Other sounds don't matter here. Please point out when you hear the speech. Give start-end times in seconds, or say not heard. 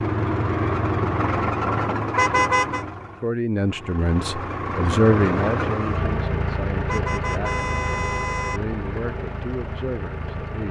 3.2-10.6.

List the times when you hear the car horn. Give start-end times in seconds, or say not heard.
2.1-2.9, 6.8-8.6.